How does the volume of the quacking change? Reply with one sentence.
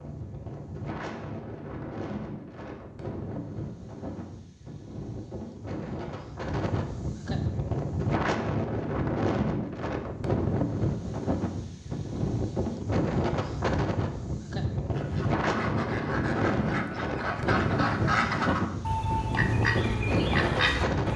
The loudness of the quacking goes up.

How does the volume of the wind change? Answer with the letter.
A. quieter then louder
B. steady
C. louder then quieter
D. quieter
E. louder
E.